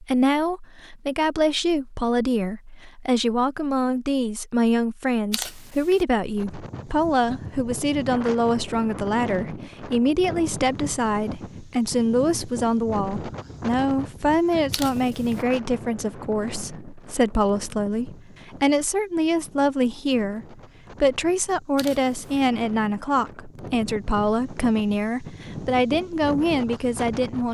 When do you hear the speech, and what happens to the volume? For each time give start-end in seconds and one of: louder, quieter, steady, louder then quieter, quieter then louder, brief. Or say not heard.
0.0-27.4 steady.